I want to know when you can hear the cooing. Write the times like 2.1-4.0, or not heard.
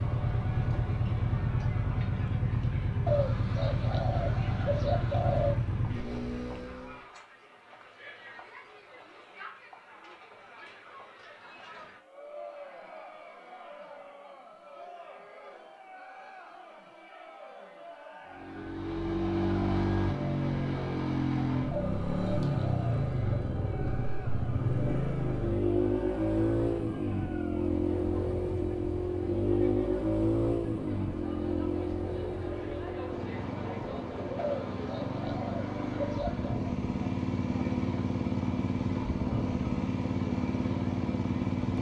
3.0-5.6, 21.7-23.4, 34.4-36.6.